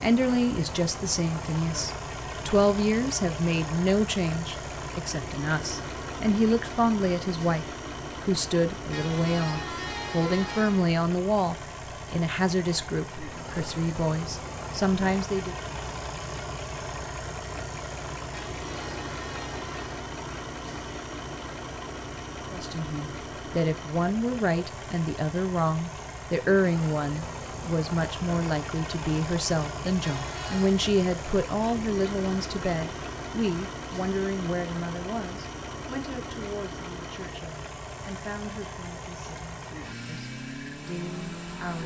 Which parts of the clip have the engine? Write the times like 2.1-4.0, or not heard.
0.0-41.8.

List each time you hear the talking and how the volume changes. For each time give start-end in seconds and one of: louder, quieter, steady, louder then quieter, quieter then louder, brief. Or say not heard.
0.0-15.6 steady
22.5-41.8 quieter.